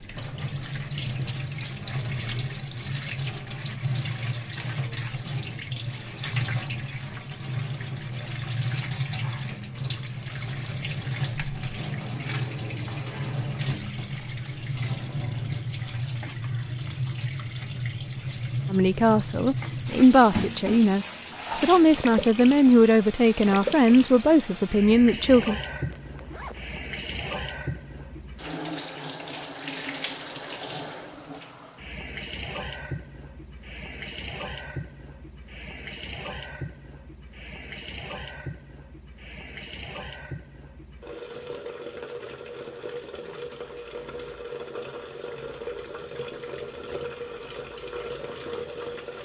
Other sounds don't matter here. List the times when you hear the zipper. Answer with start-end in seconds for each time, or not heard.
25.9-26.8.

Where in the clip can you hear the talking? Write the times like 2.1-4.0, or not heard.
18.7-25.6.